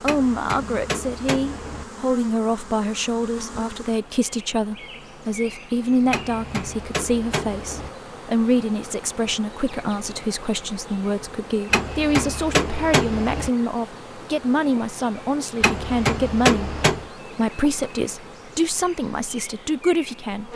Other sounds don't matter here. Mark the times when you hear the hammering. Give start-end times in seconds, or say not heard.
0.1-1.9, 6.1-7.9, 11.7-13.5, 15.6-17.1.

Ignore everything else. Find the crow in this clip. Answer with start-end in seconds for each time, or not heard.
not heard.